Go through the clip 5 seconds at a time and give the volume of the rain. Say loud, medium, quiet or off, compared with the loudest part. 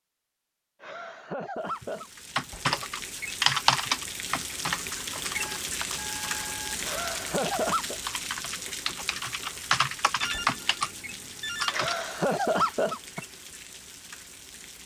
loud, loud, medium.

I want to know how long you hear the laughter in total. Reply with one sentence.
The laughter can be heard for 4 seconds in total.